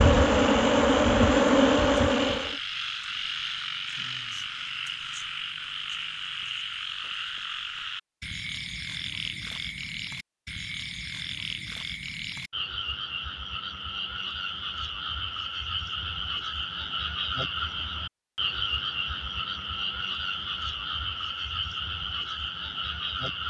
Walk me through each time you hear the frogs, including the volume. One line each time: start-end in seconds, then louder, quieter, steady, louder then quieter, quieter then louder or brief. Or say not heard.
0.0-23.4 steady.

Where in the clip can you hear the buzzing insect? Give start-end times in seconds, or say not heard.
0.0-2.5.